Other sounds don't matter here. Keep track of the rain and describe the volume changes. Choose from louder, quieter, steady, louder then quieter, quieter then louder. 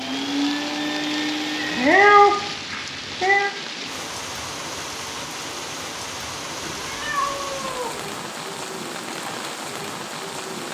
steady.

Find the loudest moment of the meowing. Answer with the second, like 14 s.
2 s.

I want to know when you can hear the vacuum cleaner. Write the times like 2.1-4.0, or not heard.
0.0-1.9.